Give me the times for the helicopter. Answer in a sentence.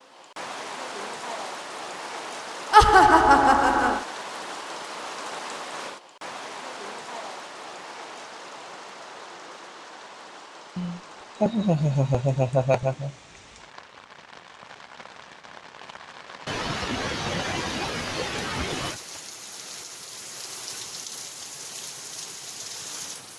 The helicopter can't be heard in this clip.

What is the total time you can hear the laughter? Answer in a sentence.
The laughter can be heard for 6 seconds in total.